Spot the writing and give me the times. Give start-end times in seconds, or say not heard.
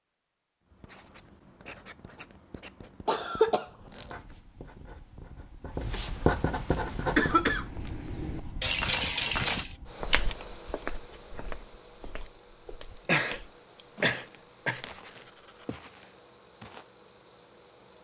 0.7-7.5.